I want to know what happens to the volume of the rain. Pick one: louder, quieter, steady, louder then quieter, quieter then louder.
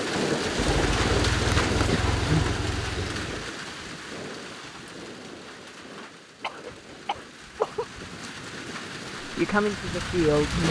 quieter then louder.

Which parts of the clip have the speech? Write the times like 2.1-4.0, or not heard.
9.3-10.6.